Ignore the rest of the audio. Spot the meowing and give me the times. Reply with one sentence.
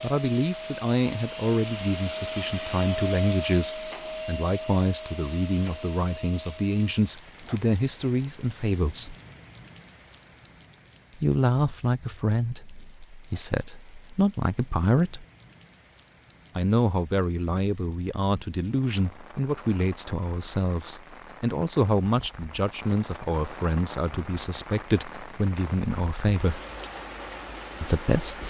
You can't hear the meowing here.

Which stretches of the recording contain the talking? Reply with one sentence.
The talking can be heard from 0.0 to 9.2 s, from 11.2 to 15.2 s, from 16.6 to 26.6 s and from 27.8 to 28.4 s.